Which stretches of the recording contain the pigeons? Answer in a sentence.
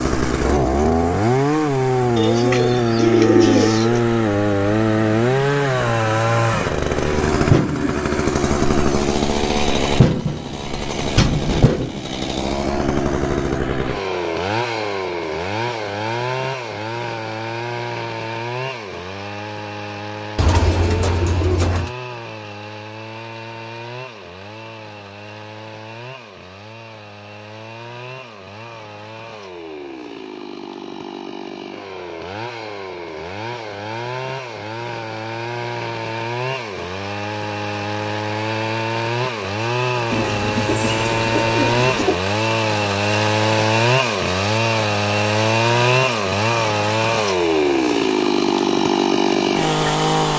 The pigeons can be heard from 2.1 to 4.0 s, from 20.4 to 21.9 s and from 40.1 to 42.2 s.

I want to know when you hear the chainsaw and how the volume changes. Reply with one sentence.
You can hear the chainsaw from 0.0 to 50.3 s, getting quieter then louder.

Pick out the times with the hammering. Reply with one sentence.
The hammering can't be heard in this clip.